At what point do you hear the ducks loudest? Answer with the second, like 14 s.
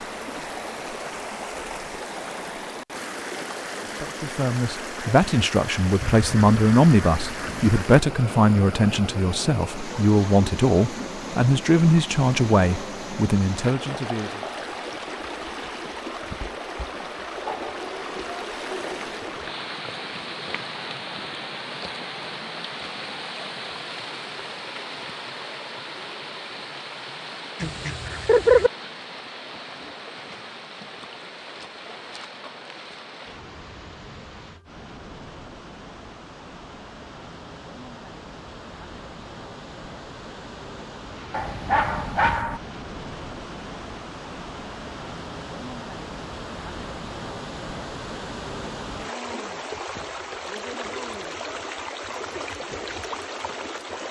28 s.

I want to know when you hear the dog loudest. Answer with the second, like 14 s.
42 s.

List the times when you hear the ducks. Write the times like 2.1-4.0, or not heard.
6.0-7.8, 27.6-28.7.